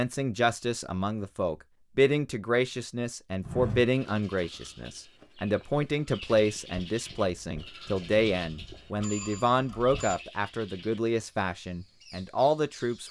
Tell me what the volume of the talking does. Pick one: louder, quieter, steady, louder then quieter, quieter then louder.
steady.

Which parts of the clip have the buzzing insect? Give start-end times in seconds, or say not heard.
not heard.